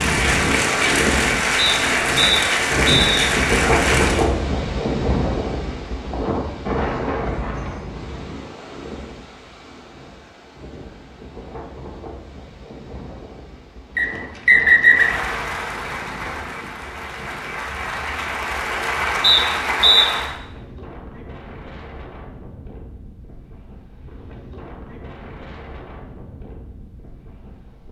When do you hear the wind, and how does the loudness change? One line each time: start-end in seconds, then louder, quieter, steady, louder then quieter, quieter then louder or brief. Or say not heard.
0.0-27.8 quieter.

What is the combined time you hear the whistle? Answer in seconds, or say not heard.
4 s.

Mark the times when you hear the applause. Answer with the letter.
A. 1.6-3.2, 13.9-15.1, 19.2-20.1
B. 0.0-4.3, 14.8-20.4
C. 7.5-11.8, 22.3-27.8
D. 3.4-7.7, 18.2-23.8
B.